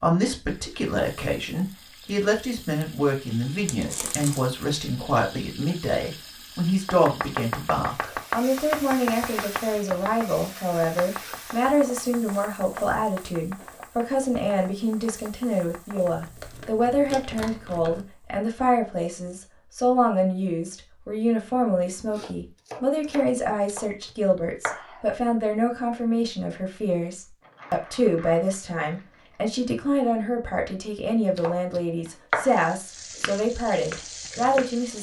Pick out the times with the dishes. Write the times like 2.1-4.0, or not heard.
not heard.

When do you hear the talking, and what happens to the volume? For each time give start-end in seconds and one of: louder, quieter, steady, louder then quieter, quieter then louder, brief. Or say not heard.
0.0-34.9 steady.